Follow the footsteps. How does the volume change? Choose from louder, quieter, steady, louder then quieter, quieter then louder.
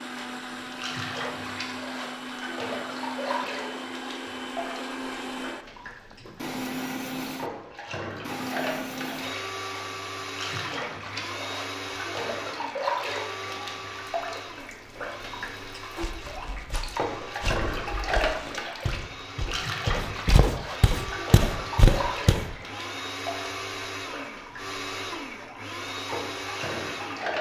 louder.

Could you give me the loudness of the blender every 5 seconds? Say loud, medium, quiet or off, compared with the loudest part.
loud, loud, loud, medium, loud, loud.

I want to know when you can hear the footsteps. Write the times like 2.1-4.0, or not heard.
16.0-22.6.